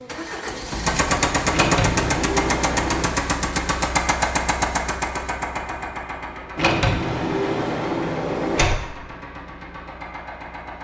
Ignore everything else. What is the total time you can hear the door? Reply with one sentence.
The door can be heard for 4 seconds in total.